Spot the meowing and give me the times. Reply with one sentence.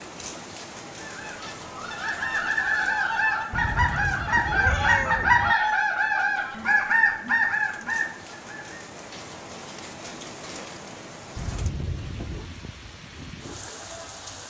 You can hear the meowing from 3.5 to 5.5 s and from 11.3 to 12.5 s.